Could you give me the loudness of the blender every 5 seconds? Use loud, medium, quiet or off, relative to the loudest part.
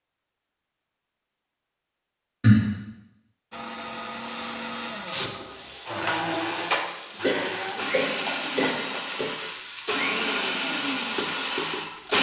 medium, medium, loud.